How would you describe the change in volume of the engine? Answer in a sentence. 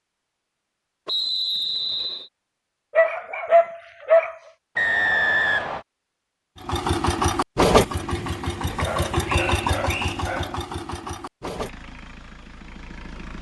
The volume of the engine goes down.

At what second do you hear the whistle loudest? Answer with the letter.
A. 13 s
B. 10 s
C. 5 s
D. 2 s
C.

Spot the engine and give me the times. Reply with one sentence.
The engine can be heard from 6.6 to 13.3 s.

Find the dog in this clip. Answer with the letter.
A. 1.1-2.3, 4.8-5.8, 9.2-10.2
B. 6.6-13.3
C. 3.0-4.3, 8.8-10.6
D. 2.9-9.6
C.